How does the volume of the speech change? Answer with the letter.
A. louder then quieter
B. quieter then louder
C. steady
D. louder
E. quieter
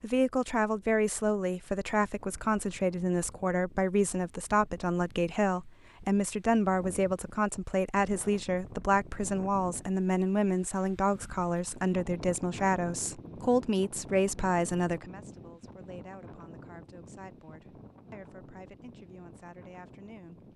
E.